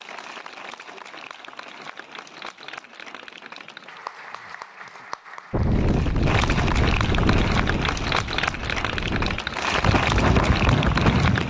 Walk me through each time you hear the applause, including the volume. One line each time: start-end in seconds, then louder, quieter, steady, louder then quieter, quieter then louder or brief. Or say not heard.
0.0-11.4 louder.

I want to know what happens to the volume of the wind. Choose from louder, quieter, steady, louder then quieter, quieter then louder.
quieter then louder.